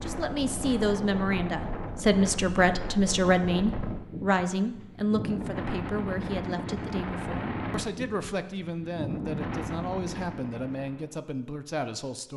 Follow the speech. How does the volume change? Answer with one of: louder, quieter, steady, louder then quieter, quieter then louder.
quieter.